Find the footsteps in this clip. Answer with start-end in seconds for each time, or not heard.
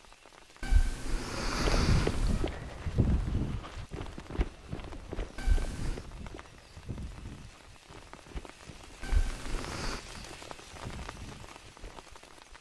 1.4-12.0.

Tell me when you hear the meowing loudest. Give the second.
2 s.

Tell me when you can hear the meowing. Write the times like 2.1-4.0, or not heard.
0.6-2.5, 5.3-6.0, 9.0-10.0.